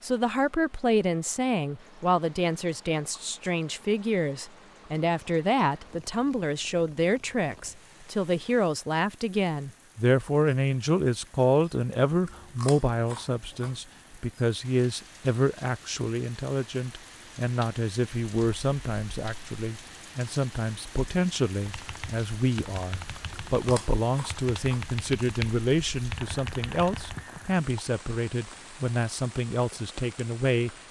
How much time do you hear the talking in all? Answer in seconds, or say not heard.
31 s.